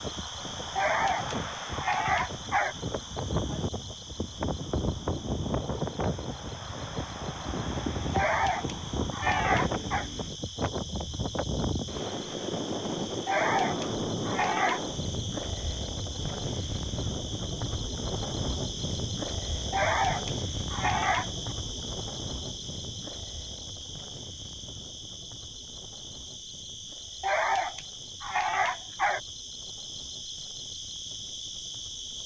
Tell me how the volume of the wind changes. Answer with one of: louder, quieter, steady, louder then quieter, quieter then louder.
quieter.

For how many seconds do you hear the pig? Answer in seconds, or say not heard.
not heard.